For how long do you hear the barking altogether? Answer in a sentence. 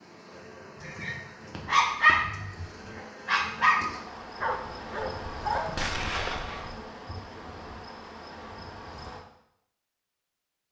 You can hear the barking for 6 seconds altogether.